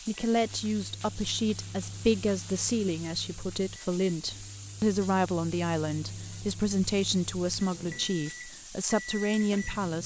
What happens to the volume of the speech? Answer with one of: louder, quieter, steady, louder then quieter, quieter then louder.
steady.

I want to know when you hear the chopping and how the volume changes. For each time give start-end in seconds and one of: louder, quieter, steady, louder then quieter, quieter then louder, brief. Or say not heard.
not heard.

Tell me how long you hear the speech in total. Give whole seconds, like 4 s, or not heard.
10 s.